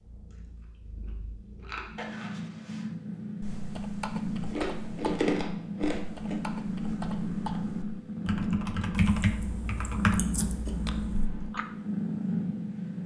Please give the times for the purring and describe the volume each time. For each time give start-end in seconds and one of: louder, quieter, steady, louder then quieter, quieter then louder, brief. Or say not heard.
0.0-13.0 louder.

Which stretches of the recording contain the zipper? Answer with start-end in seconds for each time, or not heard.
1.9-2.9.